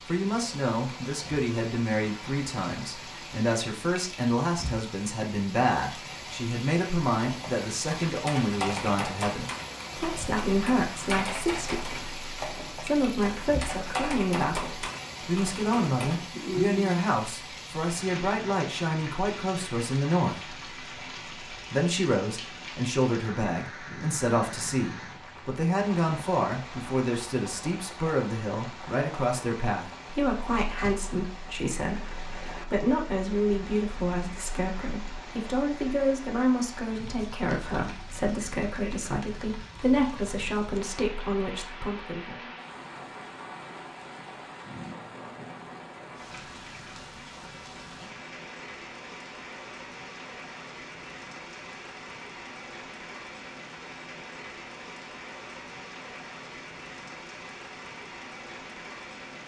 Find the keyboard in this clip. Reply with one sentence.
The keyboard can be heard from 7.2 to 17.1 s.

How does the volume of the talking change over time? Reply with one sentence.
The volume of the talking stays about the same.